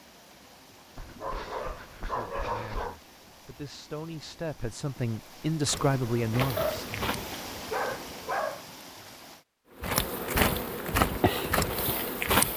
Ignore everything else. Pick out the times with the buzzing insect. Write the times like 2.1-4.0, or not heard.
5.7-8.4, 9.8-12.5.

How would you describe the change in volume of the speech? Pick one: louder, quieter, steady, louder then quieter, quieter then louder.
louder.